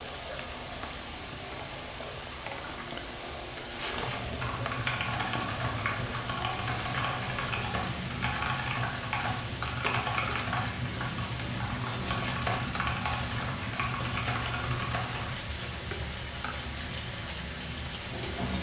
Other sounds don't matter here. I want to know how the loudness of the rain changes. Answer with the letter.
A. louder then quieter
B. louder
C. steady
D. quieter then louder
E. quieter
C.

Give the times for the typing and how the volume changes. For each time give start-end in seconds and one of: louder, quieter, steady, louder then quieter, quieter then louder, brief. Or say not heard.
3.9-15.3 steady.